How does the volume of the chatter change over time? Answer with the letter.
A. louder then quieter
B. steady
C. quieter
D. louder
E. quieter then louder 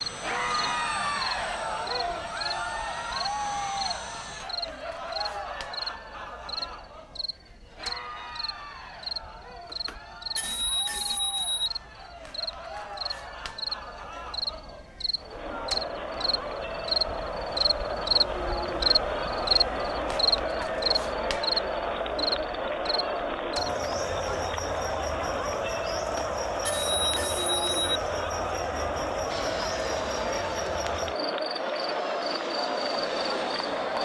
E.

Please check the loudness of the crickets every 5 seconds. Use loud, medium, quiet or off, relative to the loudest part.
medium, medium, medium, loud, loud, quiet, quiet.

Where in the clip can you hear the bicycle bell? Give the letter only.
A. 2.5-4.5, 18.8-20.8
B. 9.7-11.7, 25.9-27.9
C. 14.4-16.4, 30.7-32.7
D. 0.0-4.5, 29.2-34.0
B.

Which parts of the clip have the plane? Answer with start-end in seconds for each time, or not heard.
0.0-4.5, 29.2-34.0.